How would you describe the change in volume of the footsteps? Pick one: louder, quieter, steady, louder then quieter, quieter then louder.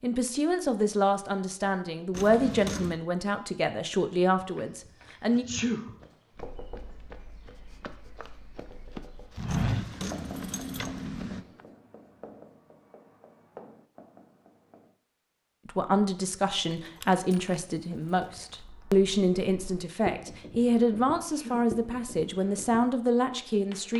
louder.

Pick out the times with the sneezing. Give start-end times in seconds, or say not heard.
5.3-6.0, 21.2-21.8.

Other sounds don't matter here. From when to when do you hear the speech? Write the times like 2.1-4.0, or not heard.
0.0-5.5, 15.7-23.9.